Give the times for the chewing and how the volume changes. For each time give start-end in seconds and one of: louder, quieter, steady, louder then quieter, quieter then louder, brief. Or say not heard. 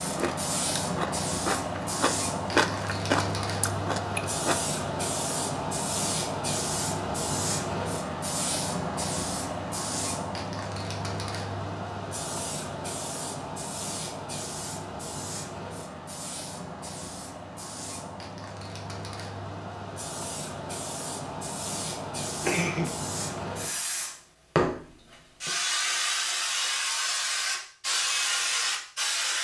0.0-4.6 louder then quieter.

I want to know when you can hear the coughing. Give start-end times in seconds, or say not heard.
22.4-23.4.